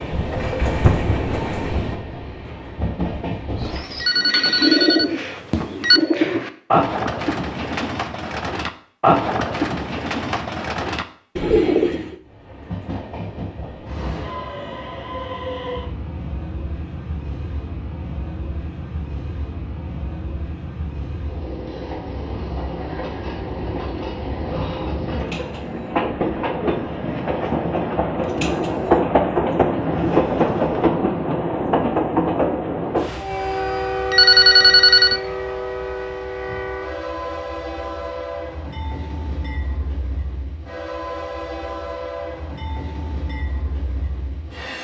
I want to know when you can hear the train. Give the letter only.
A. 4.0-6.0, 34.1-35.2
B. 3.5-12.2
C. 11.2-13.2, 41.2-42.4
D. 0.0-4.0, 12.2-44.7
D.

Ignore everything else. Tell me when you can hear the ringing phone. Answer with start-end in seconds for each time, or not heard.
4.0-6.0, 34.1-35.2.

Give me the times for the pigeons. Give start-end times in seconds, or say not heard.
3.5-12.2.